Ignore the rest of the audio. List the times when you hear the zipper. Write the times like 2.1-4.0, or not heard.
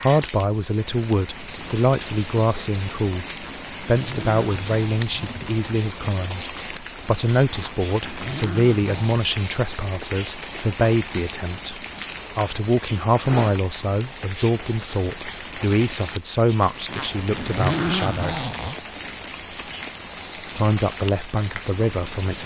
3.4-5.5, 7.5-9.2, 16.9-18.8.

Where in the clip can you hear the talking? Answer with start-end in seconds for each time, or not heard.
0.0-3.2, 3.9-11.8, 12.3-18.4, 20.6-22.4.